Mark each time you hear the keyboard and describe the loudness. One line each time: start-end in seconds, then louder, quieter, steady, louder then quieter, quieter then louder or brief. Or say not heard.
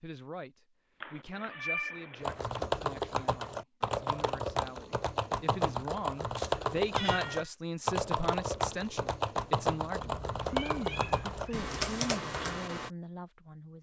2.2-12.9 steady.